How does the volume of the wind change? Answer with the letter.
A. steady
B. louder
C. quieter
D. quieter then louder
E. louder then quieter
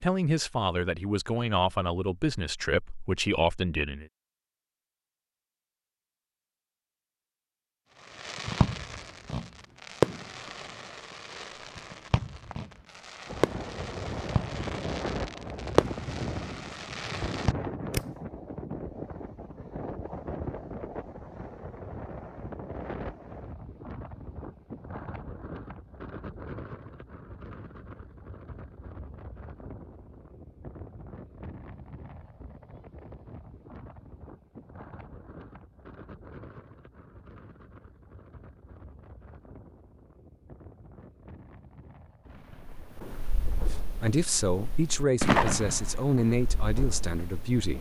C.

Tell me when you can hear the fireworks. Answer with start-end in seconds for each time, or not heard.
8.1-18.0, 42.6-47.7.